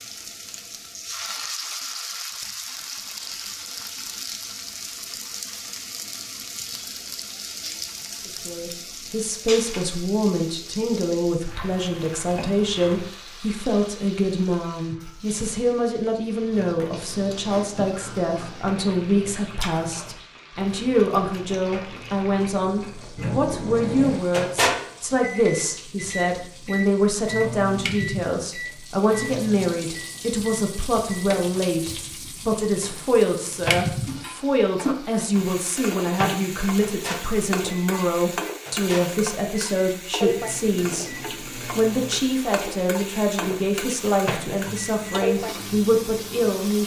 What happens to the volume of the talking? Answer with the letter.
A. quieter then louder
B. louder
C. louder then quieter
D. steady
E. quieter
D.